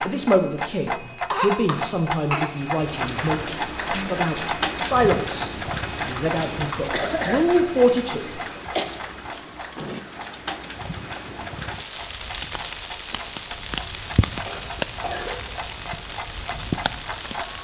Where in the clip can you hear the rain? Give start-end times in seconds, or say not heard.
2.5-17.6.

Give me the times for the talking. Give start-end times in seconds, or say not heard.
0.0-8.4.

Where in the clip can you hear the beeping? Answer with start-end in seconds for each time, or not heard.
not heard.